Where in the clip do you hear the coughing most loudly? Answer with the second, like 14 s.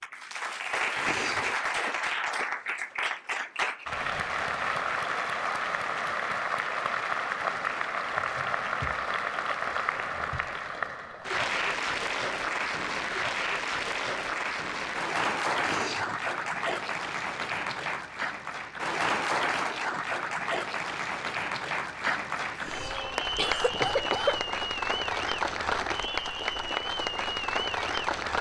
24 s.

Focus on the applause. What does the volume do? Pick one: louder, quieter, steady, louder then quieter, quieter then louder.
steady.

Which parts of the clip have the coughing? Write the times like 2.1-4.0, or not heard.
0.9-1.5, 15.6-16.2, 22.6-24.4.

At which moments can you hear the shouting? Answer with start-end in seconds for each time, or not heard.
not heard.